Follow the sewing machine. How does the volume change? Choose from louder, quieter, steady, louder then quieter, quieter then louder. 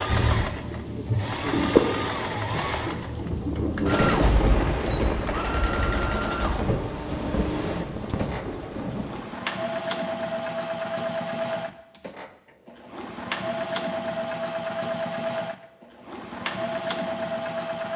steady.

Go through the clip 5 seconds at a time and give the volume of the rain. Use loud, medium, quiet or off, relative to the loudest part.
loud, medium, off, off.